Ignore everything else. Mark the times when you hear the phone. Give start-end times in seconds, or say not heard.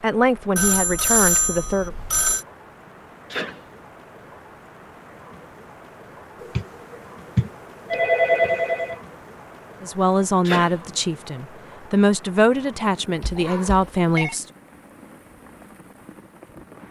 0.6-2.5, 6.4-9.0, 13.2-14.3.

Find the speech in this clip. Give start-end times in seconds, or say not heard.
0.0-1.9, 9.8-14.4.